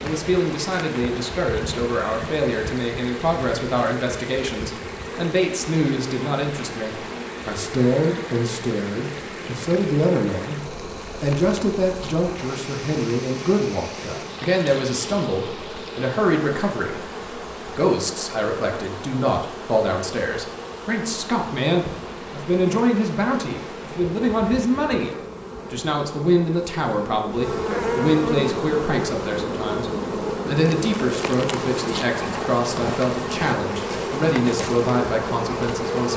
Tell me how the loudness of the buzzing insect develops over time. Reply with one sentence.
The loudness of the buzzing insect goes up.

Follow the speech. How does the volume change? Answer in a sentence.
The volume of the speech stays about the same.